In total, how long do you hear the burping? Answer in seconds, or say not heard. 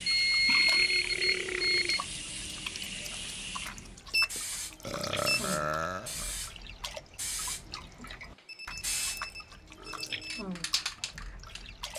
4 s.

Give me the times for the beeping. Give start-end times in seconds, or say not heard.
0.1-1.9, 4.1-5.5, 8.4-10.4.